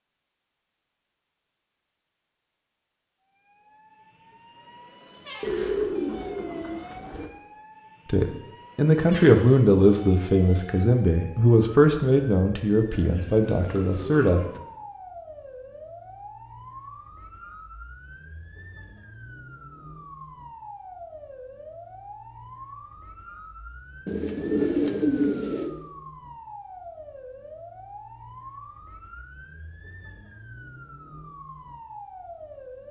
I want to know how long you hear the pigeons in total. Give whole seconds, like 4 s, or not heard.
5 s.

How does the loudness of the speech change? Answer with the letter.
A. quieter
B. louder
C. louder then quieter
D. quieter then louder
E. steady
A.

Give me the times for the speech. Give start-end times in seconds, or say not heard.
8.1-14.4.